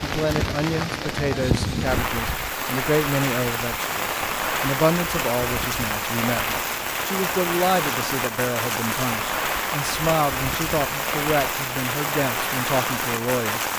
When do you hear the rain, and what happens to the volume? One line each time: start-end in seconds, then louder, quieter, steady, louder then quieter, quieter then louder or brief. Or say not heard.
0.0-13.7 steady.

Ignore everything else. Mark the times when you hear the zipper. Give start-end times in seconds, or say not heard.
not heard.